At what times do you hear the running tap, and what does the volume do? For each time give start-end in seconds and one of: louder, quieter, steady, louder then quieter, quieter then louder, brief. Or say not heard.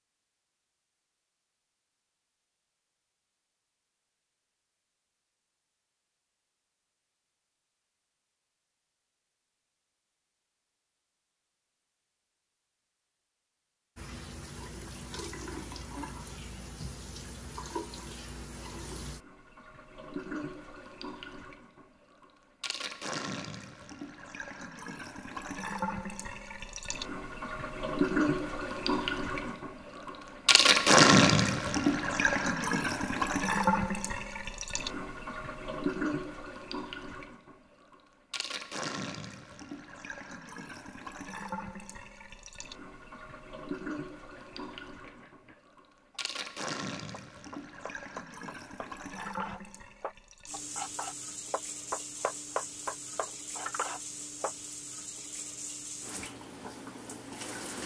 13.9-57.8 louder then quieter.